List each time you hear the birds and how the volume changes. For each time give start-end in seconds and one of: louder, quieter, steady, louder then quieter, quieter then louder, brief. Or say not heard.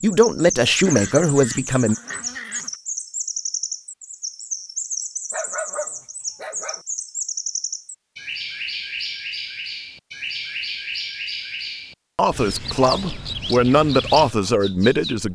0.0-15.3 steady.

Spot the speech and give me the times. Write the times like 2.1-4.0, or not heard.
0.0-1.9, 12.2-15.3.